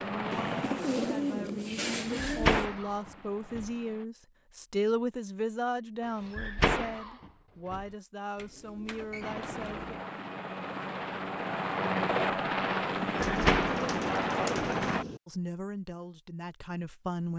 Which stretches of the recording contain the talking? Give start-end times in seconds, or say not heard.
0.0-9.9, 15.2-17.3.